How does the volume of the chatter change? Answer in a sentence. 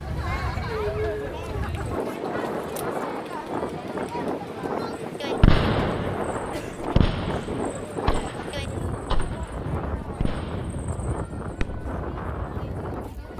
The loudness of the chatter goes down.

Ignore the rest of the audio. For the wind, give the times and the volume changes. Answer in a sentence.
You can hear the wind from 0.0 to 13.3 s, at a steady volume.